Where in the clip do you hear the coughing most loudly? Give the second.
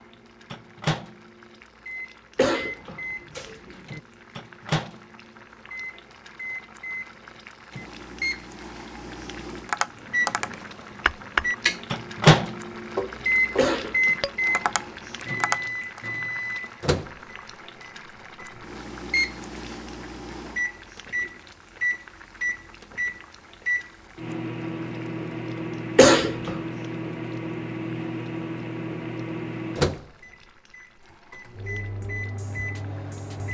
26 s.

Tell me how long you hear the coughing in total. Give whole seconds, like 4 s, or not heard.
3 s.